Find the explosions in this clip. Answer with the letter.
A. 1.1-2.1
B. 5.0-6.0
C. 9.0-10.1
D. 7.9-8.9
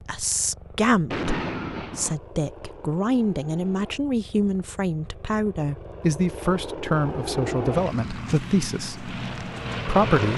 A.